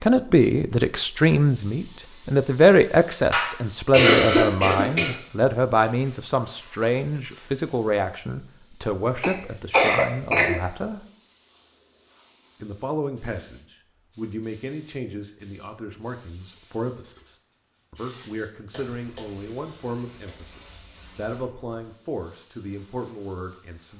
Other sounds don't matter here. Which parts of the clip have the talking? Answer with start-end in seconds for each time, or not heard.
0.0-11.1, 12.6-23.9.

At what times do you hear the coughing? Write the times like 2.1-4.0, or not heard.
3.3-5.2, 9.2-10.6, 18.7-20.4.